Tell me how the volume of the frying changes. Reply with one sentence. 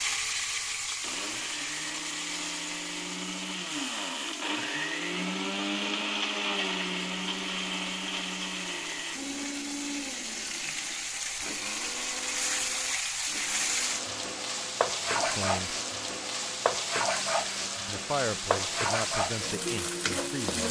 The volume of the frying goes down, then up.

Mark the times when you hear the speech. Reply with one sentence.
The speech can be heard from 15.2 to 15.8 s and from 17.9 to 20.6 s.